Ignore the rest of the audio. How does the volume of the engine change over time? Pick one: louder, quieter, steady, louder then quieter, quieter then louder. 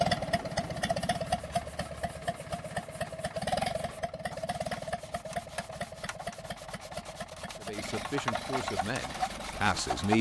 quieter.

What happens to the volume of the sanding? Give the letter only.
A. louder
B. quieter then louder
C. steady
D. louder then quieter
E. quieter
A.